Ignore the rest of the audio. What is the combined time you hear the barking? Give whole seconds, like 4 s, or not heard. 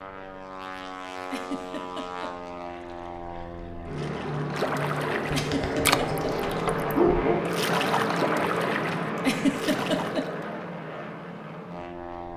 2 s.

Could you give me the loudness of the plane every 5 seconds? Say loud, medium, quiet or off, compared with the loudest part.
medium, loud, medium.